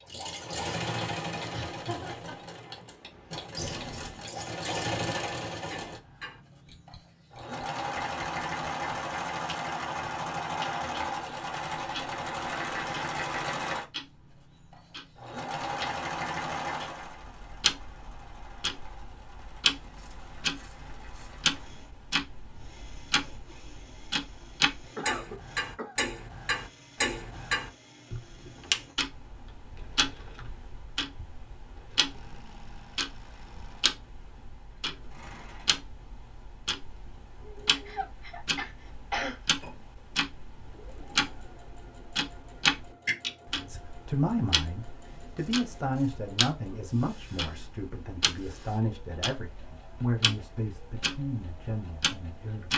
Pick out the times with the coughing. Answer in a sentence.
The coughing can be heard from 1.5 to 2.5 s, from 24.9 to 25.9 s and from 37.6 to 39.4 s.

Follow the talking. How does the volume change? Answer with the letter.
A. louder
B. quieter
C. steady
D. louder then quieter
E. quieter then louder
B.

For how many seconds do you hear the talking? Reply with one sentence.
The talking can be heard for 9 seconds in total.